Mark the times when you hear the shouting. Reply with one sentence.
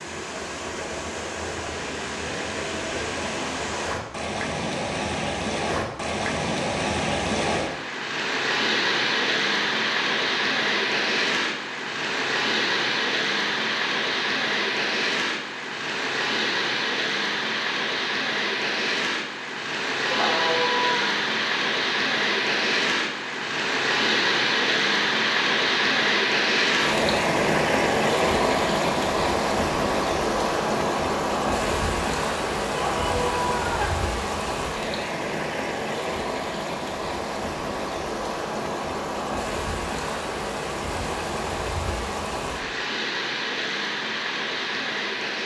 You can hear the shouting from 20.1 to 21.1 s and from 32.7 to 34.0 s.